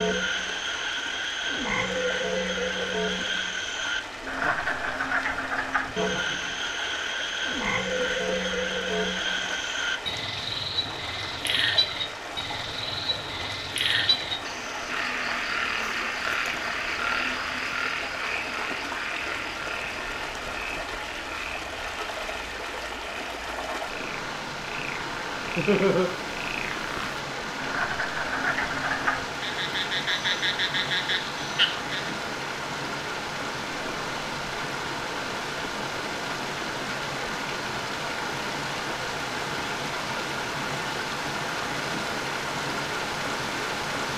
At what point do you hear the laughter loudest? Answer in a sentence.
The volume of the laughter peaks at 26 seconds.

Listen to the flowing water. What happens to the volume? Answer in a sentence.
The loudness of the flowing water goes up.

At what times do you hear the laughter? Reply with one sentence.
The laughter can be heard from 4.4 to 5.2 s, from 6.0 to 6.5 s and from 25.6 to 26.1 s.